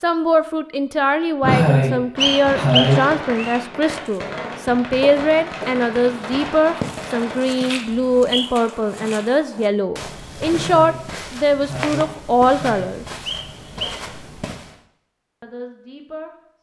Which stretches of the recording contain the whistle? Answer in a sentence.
You can hear the whistle from 2.2 to 3.6 s, from 7.9 to 8.5 s and from 13.2 to 14.0 s.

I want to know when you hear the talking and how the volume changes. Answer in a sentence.
You can hear the talking from 0.0 to 13.1 s, at a steady volume; and briefly from 15.4 to 16.3 s.